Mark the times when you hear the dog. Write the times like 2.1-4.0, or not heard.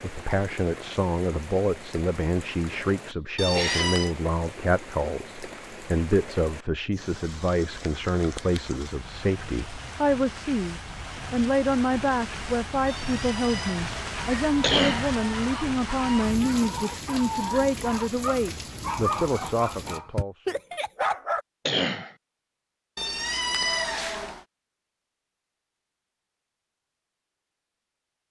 14.2-21.4.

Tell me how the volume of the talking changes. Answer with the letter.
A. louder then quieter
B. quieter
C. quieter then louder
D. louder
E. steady
E.